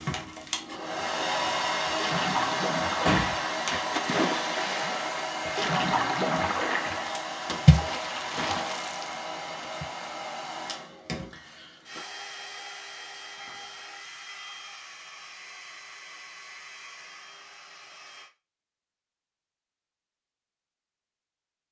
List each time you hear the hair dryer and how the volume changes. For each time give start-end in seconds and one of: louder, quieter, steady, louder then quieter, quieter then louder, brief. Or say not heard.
0.0-18.3 quieter.